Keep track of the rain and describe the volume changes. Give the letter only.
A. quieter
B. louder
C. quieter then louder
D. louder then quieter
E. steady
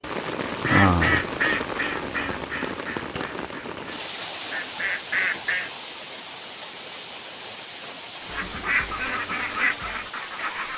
A.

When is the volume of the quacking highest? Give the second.
1 s.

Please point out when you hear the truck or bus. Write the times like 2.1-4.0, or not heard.
not heard.